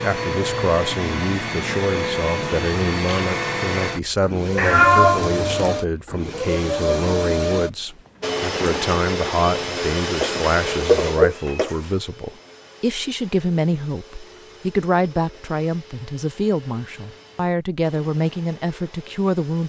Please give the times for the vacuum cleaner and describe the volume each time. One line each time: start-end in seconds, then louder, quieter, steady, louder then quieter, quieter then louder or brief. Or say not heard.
0.0-19.6 quieter.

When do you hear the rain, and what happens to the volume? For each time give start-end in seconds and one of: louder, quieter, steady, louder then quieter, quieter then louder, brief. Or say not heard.
not heard.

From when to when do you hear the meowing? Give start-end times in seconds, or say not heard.
4.5-5.8, 10.2-11.9.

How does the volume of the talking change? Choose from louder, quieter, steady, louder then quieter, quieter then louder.
steady.